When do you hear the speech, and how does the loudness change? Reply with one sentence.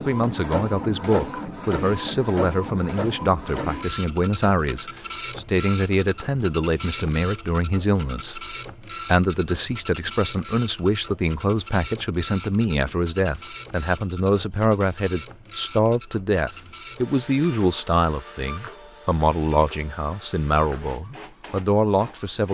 You can hear the speech from 0.0 to 22.4 s, at a steady volume.